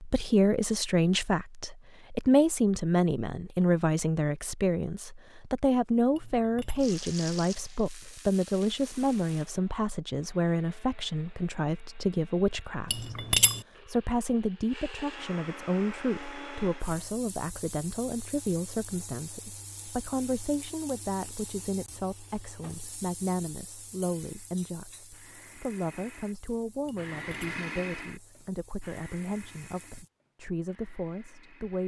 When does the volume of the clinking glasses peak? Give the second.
13 s.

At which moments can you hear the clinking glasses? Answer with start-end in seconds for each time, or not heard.
6.2-6.8, 12.9-13.6, 26.9-27.6.